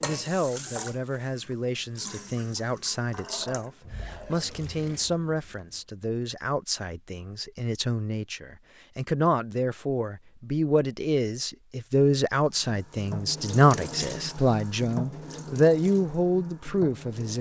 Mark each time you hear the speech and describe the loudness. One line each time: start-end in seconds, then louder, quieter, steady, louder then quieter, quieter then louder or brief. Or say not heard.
0.0-17.3 louder.